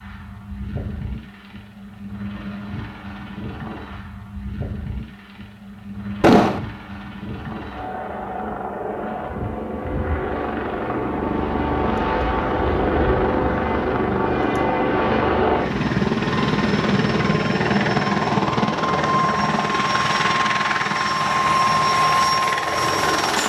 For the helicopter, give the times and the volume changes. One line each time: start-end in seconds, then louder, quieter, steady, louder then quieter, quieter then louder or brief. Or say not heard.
0.0-23.4 louder.